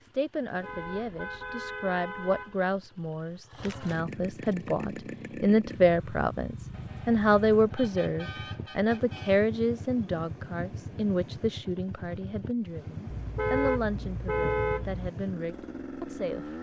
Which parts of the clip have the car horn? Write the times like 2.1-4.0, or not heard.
0.6-2.6, 6.7-9.4, 13.1-15.1.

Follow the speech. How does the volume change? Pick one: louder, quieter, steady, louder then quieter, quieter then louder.
louder then quieter.